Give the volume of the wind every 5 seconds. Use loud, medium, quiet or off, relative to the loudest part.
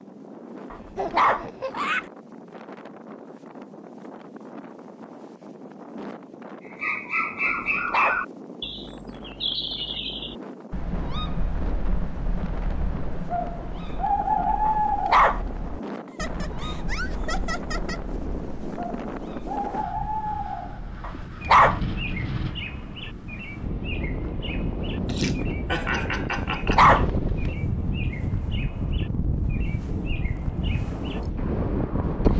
quiet, quiet, quiet, medium, medium, loud, loud.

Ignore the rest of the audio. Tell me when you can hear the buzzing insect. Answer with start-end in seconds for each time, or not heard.
not heard.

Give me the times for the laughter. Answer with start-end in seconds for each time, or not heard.
0.9-2.0, 16.1-18.0, 25.1-26.9.